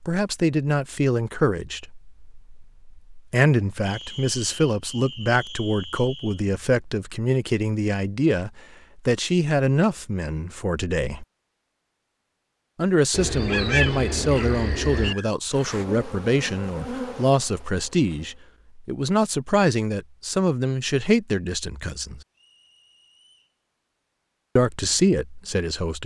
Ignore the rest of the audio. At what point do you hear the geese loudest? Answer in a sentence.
The loudest moment of the geese is at 14 seconds.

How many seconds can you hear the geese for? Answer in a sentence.
The geese can be heard for 2 seconds in total.